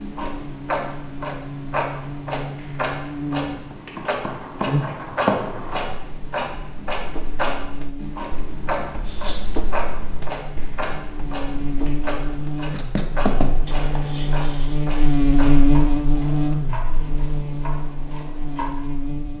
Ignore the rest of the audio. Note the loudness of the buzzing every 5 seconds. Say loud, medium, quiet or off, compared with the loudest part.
medium, quiet, medium, loud.